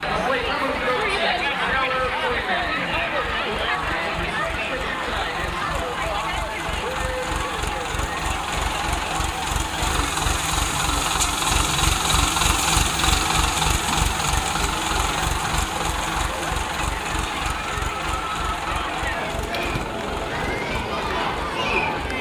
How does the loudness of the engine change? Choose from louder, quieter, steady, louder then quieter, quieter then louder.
louder then quieter.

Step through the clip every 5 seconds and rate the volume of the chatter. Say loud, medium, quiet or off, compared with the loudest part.
loud, medium, medium, medium, loud.